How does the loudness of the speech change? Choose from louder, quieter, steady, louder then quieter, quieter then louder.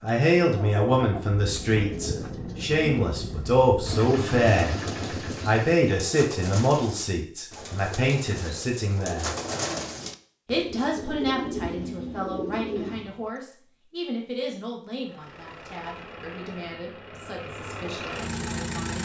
quieter.